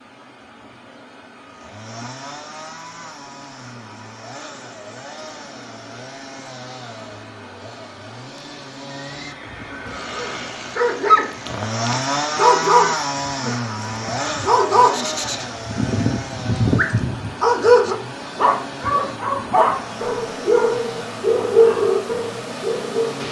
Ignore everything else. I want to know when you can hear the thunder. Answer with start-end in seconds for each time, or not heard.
not heard.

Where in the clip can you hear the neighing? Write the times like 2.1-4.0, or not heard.
8.9-10.6.